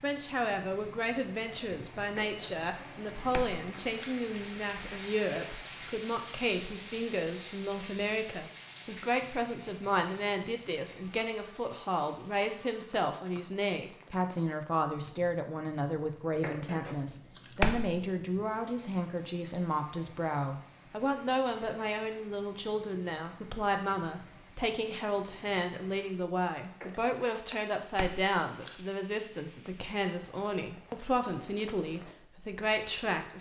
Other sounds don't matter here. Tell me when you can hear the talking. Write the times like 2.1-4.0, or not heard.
0.0-33.3.